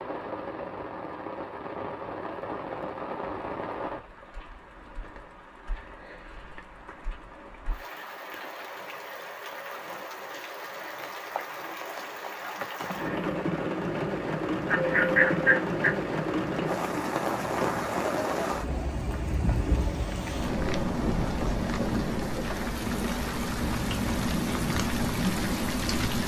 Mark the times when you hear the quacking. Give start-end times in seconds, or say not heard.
14.7-15.9.